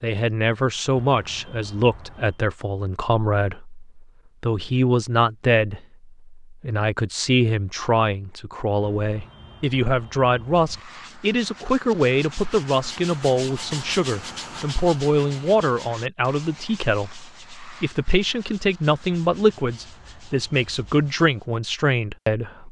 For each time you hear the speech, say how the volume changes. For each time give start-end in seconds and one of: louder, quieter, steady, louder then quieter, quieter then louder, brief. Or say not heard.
0.0-22.6 steady.